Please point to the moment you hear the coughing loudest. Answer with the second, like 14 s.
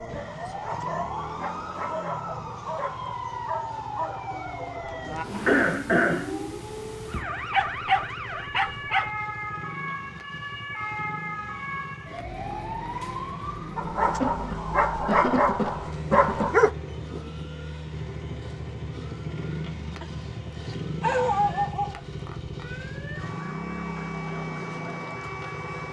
6 s.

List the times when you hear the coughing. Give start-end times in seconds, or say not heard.
5.5-6.3, 14.0-16.5.